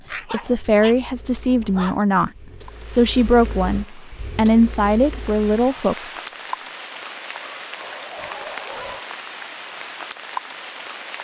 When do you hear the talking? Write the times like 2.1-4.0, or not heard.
0.3-2.3, 2.9-6.1.